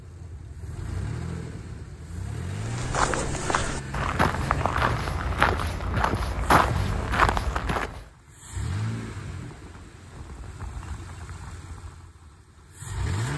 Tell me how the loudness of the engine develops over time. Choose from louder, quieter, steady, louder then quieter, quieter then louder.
quieter.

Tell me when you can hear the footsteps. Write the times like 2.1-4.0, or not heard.
2.5-8.1.